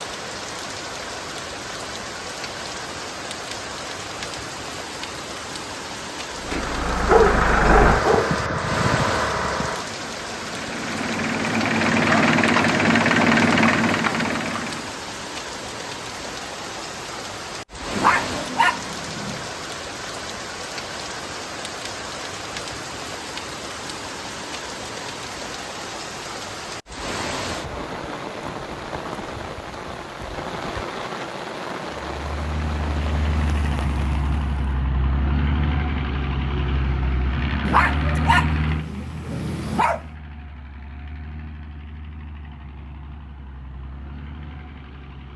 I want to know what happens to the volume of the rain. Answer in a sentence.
The loudness of the rain stays about the same.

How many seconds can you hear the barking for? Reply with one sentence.
The barking can be heard for 6 seconds in total.